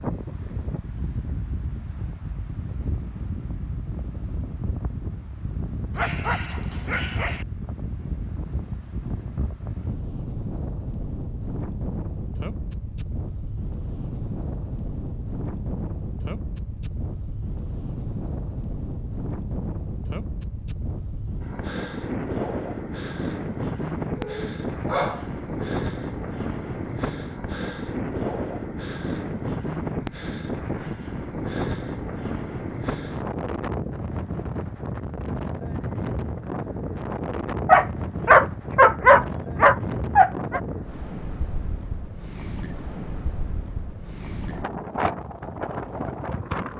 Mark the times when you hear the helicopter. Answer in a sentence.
The helicopter can't be heard in this clip.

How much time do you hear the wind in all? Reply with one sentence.
You can hear the wind for 47 seconds altogether.